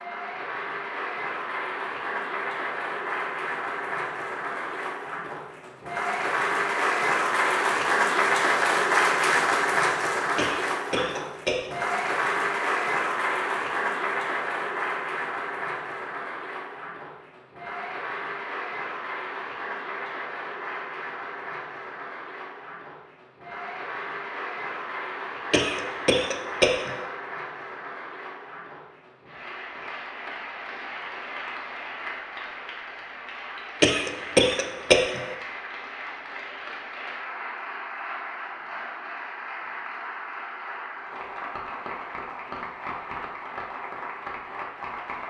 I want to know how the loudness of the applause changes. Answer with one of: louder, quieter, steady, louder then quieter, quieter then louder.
quieter.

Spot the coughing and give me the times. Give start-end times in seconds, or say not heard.
10.3-11.9, 25.5-27.1, 33.8-35.4.